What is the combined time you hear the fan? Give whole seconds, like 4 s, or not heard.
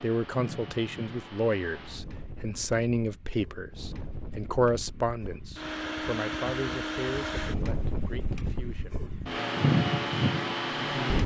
11 s.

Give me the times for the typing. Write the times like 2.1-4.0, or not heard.
not heard.